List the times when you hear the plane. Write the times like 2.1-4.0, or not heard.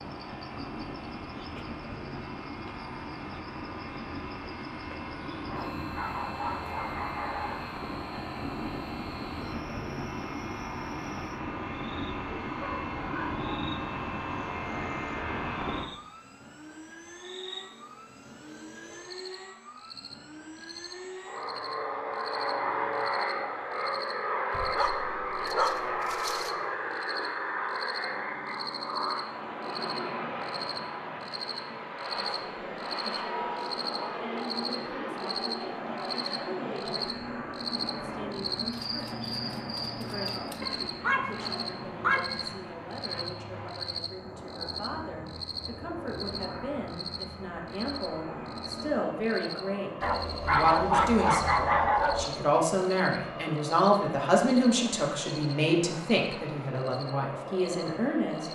0.0-58.4.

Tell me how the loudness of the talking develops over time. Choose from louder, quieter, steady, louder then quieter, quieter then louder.
louder.